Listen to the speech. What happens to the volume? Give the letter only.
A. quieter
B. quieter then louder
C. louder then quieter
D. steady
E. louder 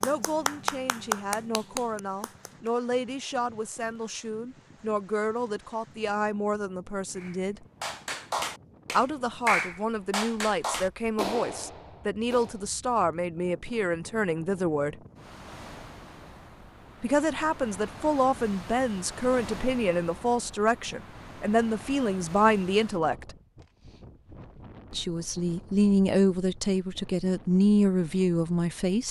E.